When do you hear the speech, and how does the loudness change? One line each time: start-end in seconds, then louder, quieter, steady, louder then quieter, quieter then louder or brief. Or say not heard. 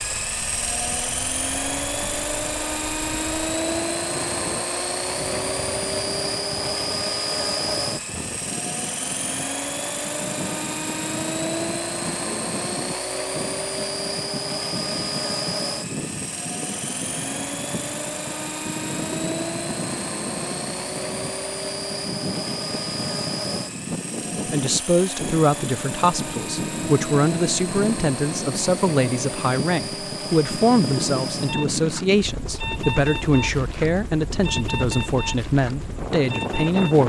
24.5-37.0 steady.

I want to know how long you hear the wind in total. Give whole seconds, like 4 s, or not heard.
37 s.